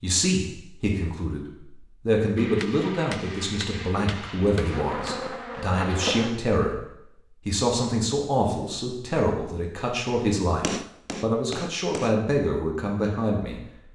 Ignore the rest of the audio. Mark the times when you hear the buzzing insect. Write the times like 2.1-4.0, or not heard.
4.7-6.3.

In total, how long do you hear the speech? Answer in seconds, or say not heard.
13 s.